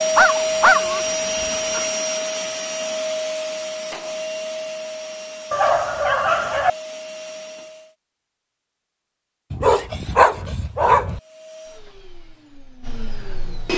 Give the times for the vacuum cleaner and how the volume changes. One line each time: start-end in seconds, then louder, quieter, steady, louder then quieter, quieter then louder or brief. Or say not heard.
0.0-8.0 quieter
11.1-13.7 brief.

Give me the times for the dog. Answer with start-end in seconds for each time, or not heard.
0.1-1.9, 5.5-6.7, 9.5-11.2.